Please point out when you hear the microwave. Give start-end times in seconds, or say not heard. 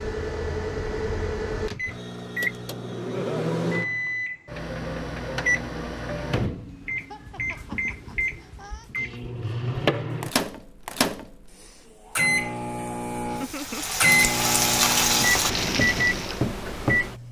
0.0-17.2.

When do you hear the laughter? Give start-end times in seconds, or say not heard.
3.1-3.5, 7.0-8.9, 13.2-13.9.